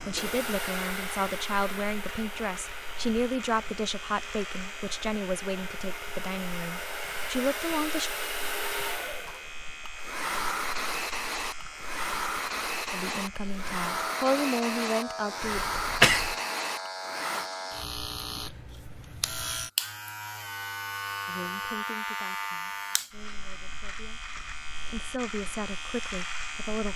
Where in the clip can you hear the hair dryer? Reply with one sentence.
You can hear the hair dryer from 0.0 to 17.5 s.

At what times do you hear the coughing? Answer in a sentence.
The coughing can be heard from 15.4 to 16.4 s.